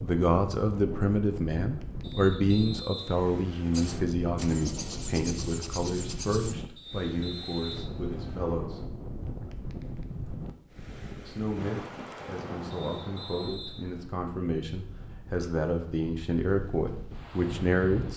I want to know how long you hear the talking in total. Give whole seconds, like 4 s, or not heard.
16 s.